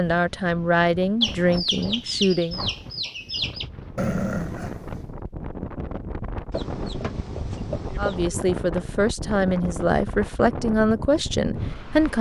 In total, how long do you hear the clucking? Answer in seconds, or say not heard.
4 s.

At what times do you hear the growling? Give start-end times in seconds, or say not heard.
4.0-5.2.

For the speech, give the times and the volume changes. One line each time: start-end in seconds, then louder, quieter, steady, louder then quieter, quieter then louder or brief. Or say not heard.
0.0-2.6 brief
8.0-12.1 steady.